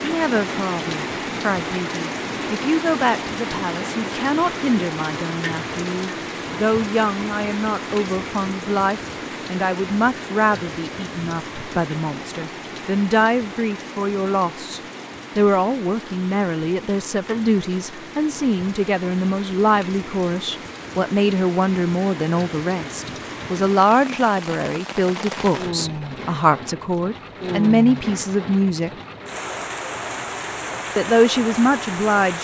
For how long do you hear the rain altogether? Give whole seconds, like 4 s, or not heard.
32 s.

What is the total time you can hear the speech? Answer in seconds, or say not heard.
30 s.